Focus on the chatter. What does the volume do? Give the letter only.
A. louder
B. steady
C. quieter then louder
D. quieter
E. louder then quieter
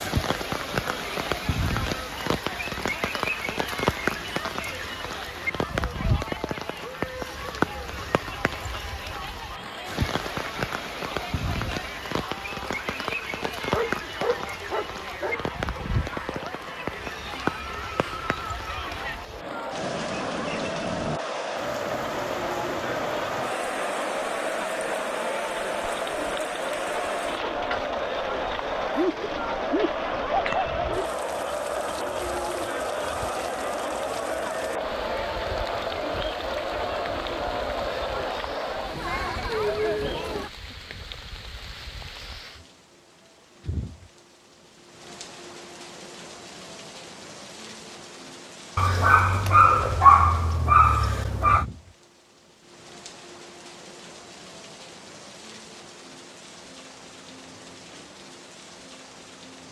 A.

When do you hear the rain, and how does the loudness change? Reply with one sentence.
You can hear the rain from 0.0 to 59.6 s, getting quieter.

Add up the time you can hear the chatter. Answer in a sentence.
The chatter can be heard for 40 seconds in total.